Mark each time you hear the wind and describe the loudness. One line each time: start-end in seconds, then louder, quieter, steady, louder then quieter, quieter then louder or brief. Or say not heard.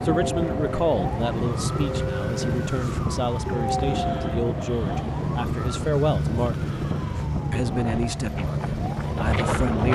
0.0-9.9 steady.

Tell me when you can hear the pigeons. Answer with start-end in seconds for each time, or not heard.
not heard.